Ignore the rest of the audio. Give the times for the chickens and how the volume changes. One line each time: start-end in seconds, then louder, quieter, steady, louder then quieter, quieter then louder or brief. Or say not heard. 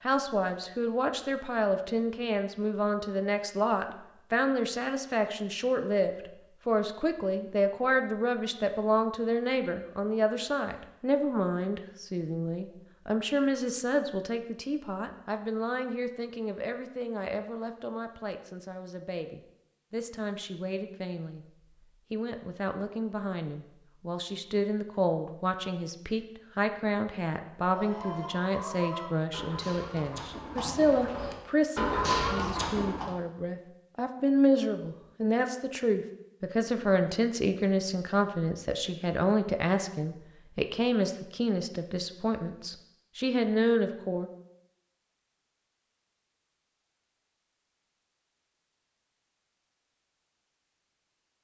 27.6-33.1 louder.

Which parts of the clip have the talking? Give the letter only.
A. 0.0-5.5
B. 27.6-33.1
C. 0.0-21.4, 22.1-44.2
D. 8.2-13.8
C.